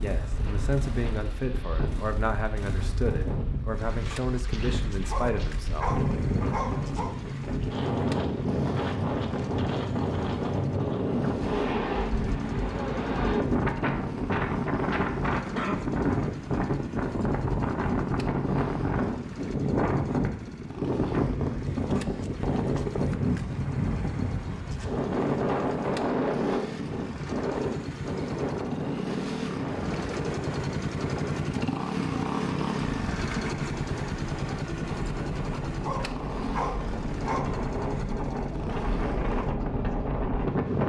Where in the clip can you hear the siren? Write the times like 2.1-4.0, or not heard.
not heard.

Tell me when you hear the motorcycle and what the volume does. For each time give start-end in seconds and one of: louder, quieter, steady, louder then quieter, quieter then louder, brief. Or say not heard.
0.0-40.8 louder.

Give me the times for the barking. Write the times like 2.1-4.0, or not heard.
5.0-7.2, 35.8-37.5.